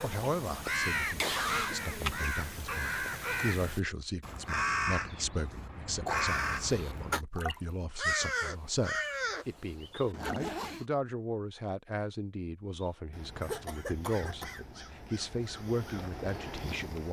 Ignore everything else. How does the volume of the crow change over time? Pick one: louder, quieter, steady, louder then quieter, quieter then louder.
quieter.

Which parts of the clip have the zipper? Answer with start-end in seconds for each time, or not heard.
10.1-10.8.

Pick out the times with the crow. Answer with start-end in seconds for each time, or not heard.
0.0-10.4, 12.8-17.0.